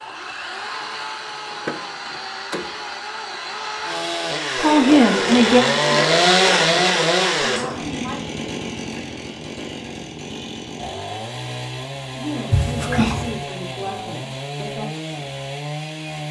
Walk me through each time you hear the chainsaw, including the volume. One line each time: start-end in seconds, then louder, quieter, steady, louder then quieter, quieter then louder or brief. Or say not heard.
0.0-16.2 louder then quieter.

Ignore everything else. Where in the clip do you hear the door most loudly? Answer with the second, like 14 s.
13 s.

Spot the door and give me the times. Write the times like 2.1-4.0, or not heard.
1.5-2.9, 12.5-13.4.